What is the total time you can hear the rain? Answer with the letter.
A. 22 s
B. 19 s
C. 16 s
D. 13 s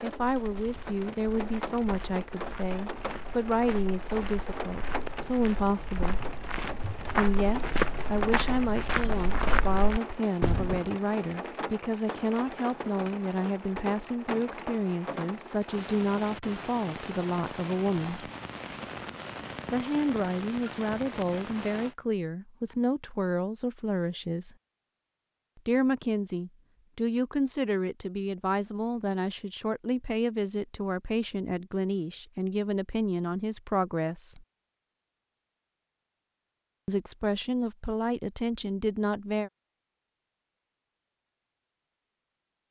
A.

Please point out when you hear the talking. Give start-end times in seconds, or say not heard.
0.0-6.2, 7.0-18.3, 19.7-24.6, 25.6-34.5, 36.9-39.5.